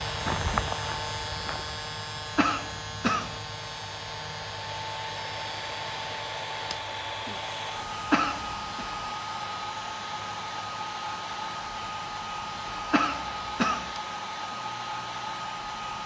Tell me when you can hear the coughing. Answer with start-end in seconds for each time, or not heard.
2.4-3.4, 8.1-8.8, 12.9-13.9.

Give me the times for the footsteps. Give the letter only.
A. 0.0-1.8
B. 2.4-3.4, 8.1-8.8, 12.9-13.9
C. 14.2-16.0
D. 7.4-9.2
A.